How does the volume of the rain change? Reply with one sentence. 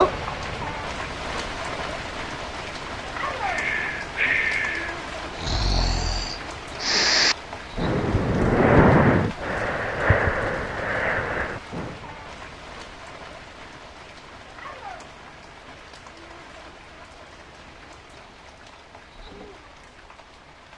The volume of the rain goes down.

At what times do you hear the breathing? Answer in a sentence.
You can hear the breathing from 3.4 to 11.9 s.